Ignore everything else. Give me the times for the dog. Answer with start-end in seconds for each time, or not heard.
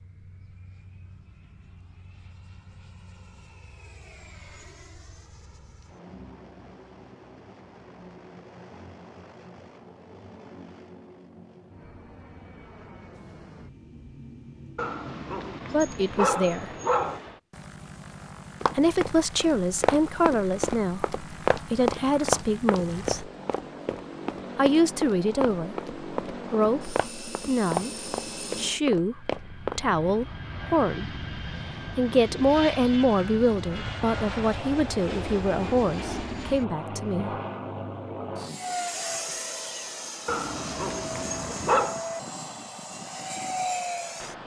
14.8-17.2, 40.2-42.0.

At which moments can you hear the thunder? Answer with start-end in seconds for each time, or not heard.
not heard.